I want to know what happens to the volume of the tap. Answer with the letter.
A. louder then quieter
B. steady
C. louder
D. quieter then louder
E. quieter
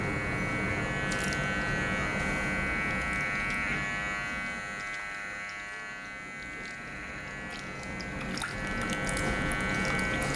D.